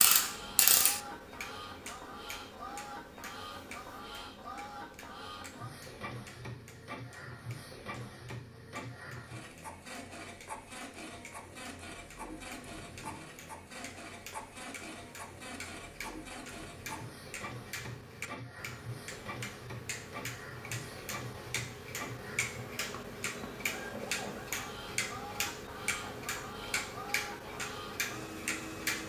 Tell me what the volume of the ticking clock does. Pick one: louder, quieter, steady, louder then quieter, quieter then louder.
quieter then louder.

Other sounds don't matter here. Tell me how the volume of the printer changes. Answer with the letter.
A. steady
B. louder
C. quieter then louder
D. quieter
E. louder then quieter
A.